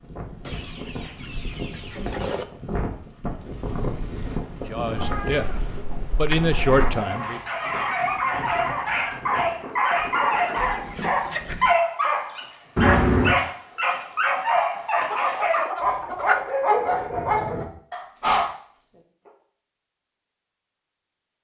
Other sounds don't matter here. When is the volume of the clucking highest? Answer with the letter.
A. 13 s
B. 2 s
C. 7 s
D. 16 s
D.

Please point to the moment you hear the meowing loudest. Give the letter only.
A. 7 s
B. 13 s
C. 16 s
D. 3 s
B.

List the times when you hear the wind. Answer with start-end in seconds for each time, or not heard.
0.0-11.0.